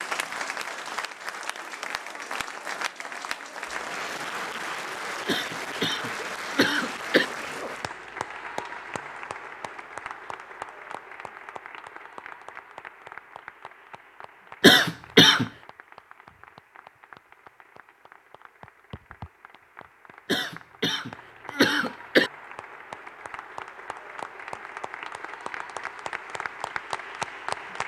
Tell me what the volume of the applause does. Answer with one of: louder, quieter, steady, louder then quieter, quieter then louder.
quieter then louder.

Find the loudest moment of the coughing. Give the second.
15 s.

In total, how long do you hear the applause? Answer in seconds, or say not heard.
28 s.